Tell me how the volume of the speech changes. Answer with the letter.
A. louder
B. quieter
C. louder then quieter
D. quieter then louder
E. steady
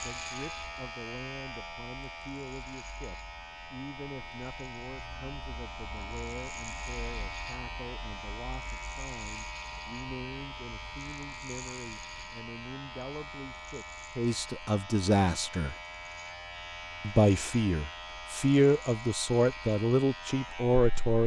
A.